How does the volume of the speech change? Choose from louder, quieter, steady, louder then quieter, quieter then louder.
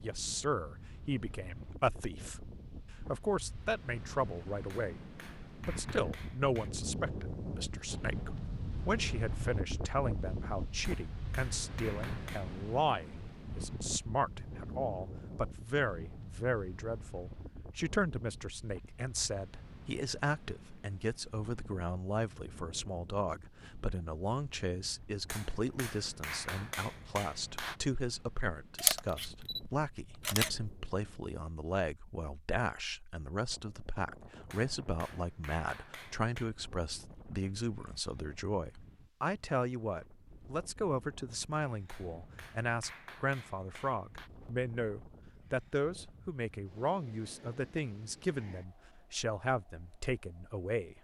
steady.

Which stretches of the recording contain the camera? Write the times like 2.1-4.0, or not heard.
28.8-30.7.